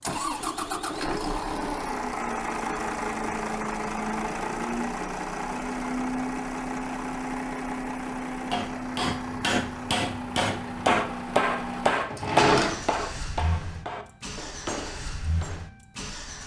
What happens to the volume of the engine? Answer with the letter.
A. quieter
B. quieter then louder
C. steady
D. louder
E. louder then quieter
A.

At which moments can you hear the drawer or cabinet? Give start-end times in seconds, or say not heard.
12.1-13.1.